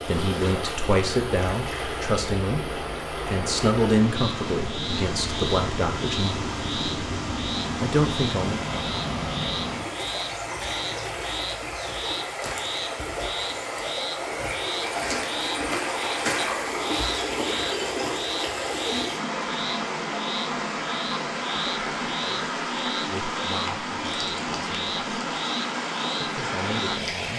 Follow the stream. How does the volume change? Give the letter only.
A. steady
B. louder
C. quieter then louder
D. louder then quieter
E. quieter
A.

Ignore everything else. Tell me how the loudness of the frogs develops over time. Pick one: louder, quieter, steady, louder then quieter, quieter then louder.
steady.